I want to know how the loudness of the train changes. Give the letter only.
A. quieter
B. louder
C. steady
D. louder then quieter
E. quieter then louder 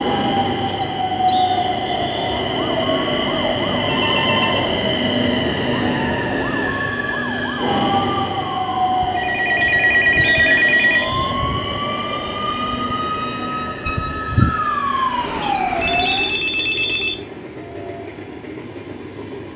A.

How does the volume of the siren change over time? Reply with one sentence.
The loudness of the siren goes up.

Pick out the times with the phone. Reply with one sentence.
The phone can be heard from 3.8 to 4.8 s, from 9.2 to 11.1 s and from 15.8 to 17.1 s.